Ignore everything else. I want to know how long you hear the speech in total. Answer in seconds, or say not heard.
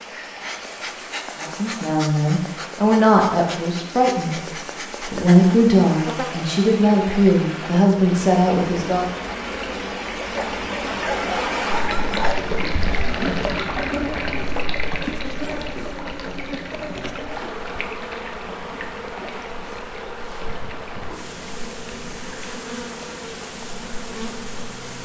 8 s.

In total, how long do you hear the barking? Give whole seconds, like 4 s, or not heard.
2 s.